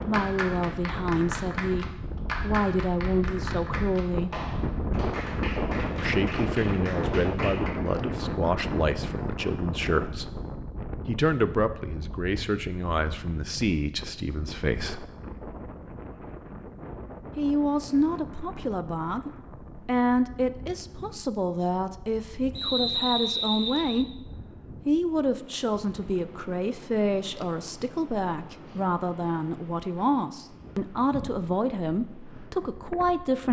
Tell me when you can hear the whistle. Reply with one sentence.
You can hear the whistle from 22.6 to 24.1 s.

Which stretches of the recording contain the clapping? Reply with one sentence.
The clapping can be heard from 0.0 to 7.7 s.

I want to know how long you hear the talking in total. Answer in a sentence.
The talking can be heard for 28 seconds in total.